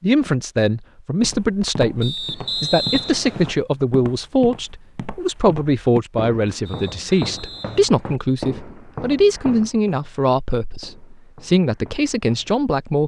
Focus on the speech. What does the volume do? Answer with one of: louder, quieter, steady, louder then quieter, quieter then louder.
steady.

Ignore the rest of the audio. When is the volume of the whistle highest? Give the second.
3 s.